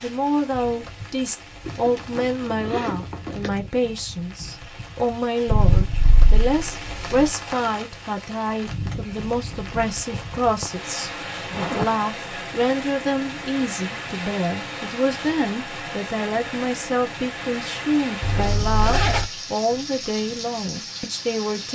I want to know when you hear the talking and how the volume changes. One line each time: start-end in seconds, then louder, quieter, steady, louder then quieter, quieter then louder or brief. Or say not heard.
0.0-21.7 steady.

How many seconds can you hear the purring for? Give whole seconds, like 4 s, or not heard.
2 s.